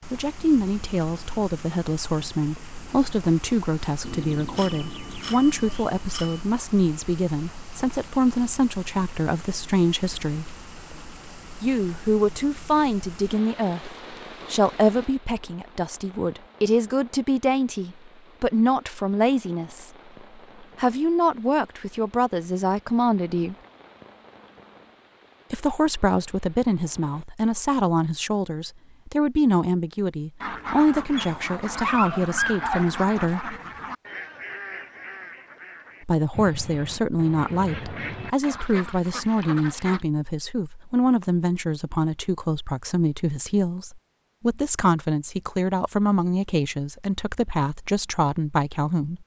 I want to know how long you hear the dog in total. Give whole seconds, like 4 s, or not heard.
2 s.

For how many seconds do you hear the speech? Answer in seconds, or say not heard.
43 s.